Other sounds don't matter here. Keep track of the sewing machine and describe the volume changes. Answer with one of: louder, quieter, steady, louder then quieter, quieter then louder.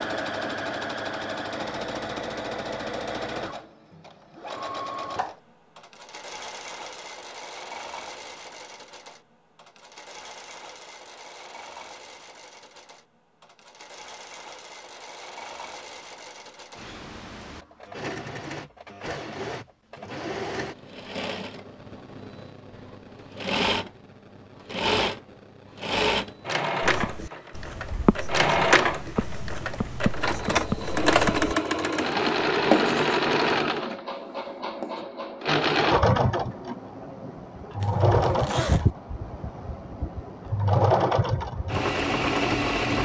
quieter then louder.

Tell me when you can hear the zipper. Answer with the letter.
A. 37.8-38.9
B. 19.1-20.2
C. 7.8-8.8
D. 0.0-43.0
A.